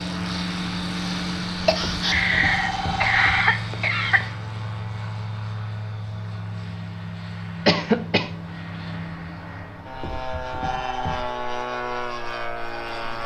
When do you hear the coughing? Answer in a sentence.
You can hear the coughing from 1.6 to 4.2 s and from 7.7 to 8.3 s.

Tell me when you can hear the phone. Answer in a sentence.
You can hear the phone from 1.8 to 3.5 s and from 10.0 to 11.2 s.